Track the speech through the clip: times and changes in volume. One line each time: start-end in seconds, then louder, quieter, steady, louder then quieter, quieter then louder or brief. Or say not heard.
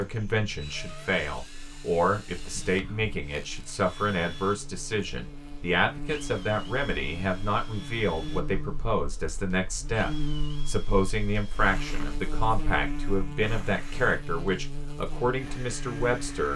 0.0-16.5 steady.